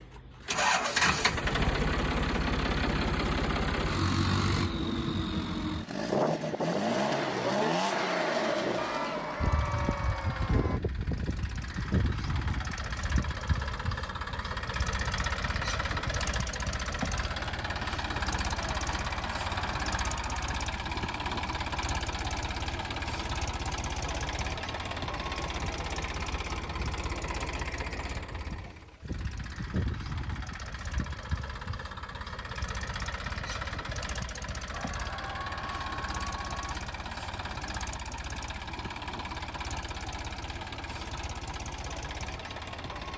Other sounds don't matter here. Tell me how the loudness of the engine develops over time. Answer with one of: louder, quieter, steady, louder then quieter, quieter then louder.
quieter.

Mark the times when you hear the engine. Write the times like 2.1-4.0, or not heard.
0.0-43.1.